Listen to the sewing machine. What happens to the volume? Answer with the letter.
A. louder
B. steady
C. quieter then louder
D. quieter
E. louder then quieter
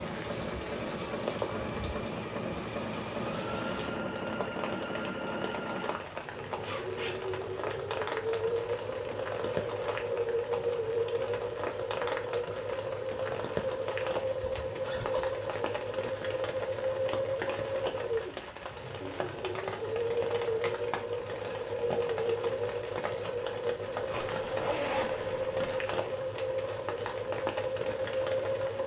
B.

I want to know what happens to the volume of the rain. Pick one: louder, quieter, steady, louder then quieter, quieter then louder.
steady.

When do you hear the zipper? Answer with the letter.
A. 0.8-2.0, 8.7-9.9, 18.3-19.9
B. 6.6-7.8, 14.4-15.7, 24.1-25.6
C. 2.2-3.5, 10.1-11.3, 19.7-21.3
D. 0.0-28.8
B.